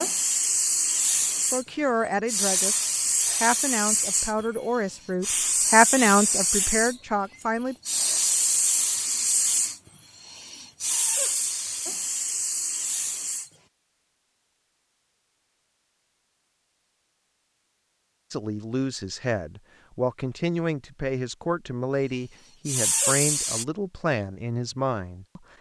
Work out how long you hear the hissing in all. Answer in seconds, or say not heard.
15 s.